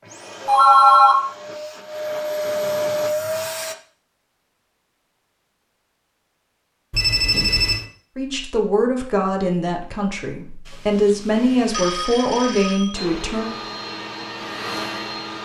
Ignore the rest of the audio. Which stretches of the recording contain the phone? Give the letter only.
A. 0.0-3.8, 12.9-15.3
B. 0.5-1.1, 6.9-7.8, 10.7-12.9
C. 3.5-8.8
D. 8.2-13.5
B.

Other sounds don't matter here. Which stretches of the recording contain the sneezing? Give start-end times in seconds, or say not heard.
not heard.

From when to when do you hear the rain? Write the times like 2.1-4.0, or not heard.
not heard.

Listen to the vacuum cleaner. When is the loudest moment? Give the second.
3 s.